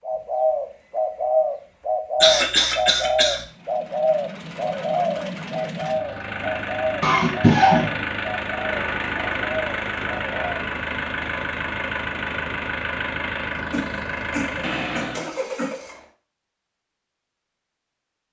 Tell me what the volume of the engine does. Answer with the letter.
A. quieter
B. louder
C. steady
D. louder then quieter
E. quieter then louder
B.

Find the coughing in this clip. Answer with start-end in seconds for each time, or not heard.
2.2-3.4, 7.0-7.9, 13.7-15.7.